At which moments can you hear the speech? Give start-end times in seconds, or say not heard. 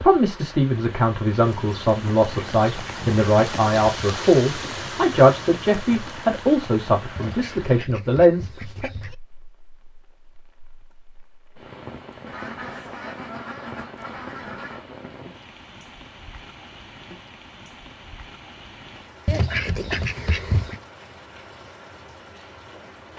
0.0-8.9.